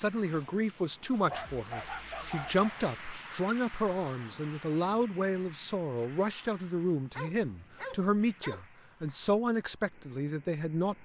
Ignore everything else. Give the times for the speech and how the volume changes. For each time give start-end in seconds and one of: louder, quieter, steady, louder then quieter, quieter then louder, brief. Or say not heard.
0.0-11.0 steady.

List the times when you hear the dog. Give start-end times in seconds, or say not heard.
1.2-2.8, 7.2-8.6.